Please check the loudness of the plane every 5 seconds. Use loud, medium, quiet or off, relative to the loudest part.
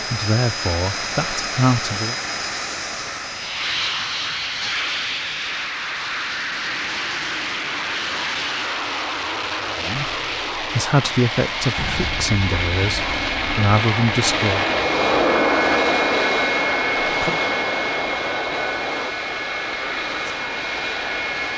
medium, medium, loud, loud, medium.